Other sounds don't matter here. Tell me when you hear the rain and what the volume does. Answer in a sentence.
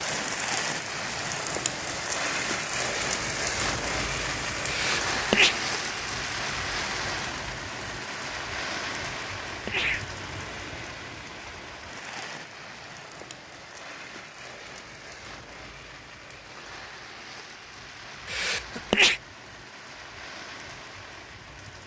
The rain can be heard from 0.0 to 21.8 s, getting quieter.